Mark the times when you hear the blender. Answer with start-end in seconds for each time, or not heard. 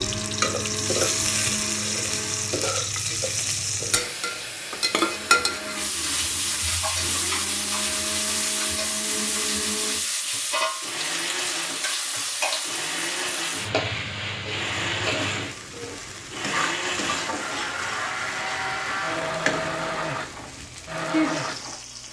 0.0-2.7, 5.0-22.0.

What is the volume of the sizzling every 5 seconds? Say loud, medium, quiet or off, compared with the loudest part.
loud, loud, loud, medium, medium.